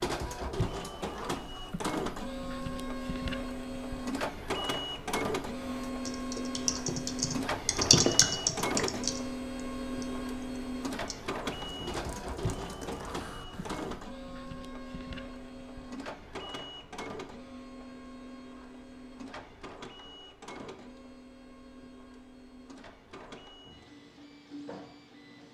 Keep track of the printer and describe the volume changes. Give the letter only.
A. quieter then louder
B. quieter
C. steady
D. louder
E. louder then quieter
B.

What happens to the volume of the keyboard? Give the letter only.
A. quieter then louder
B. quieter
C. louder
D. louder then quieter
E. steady
D.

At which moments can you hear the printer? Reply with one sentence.
The printer can be heard from 0.0 to 25.4 s.